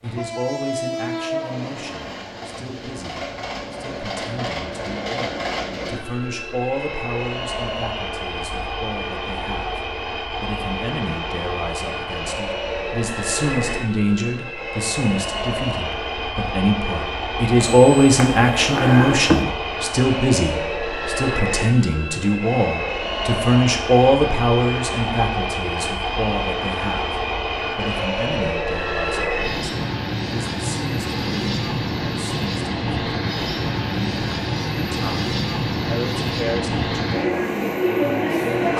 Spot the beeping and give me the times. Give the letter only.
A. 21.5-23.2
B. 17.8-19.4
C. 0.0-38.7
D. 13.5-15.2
B.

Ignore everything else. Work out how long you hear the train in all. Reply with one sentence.
You can hear the train for 39 seconds altogether.